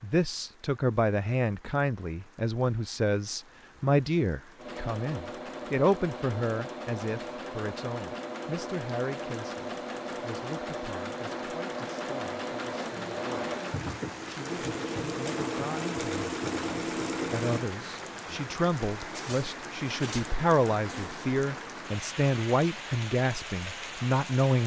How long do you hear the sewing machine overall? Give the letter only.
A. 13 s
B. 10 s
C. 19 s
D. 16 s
A.